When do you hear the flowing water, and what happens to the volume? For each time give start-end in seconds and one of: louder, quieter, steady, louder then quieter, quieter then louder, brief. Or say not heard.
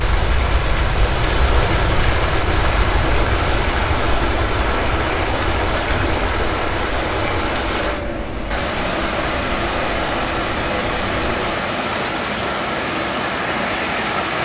0.0-14.4 steady.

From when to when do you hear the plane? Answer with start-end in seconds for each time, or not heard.
0.0-11.4.